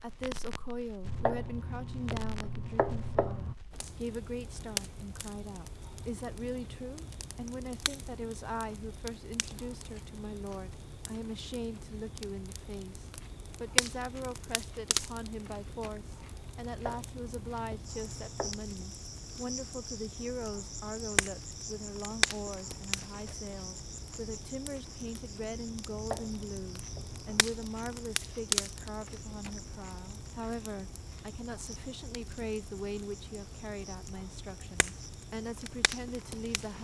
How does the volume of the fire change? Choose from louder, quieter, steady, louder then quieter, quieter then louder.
louder then quieter.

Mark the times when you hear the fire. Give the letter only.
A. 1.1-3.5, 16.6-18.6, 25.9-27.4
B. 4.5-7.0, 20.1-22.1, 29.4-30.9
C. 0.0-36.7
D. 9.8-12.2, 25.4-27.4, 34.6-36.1
C.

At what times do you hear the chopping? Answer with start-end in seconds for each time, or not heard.
1.1-3.5, 16.6-18.6, 25.9-27.4.